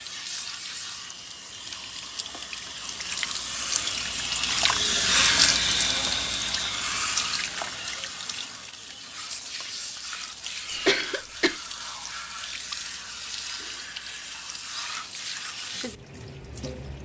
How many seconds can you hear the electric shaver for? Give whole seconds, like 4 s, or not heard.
not heard.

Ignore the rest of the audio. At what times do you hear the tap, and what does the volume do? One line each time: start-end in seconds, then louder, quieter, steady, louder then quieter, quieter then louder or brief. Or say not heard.
0.0-17.0 louder then quieter.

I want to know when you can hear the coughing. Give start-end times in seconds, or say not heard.
10.7-11.6.